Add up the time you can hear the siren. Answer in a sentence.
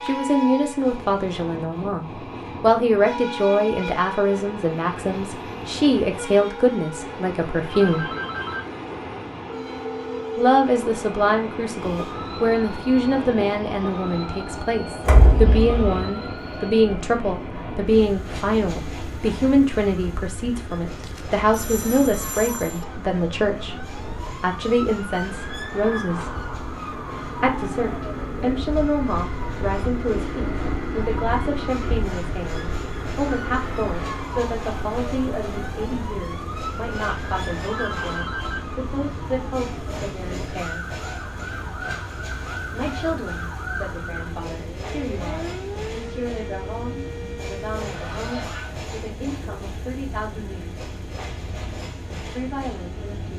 You can hear the siren for 37 seconds altogether.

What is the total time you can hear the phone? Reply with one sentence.
You can hear the phone for 4 seconds altogether.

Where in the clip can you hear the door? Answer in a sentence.
The door can be heard from 15.1 to 16.1 s.